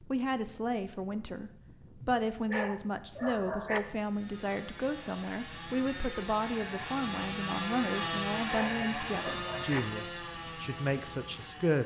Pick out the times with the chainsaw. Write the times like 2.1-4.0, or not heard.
4.0-11.8.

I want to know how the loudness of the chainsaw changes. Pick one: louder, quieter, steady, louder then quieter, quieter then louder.
louder then quieter.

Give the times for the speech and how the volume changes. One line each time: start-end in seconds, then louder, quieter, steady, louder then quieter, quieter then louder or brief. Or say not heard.
0.0-11.8 steady.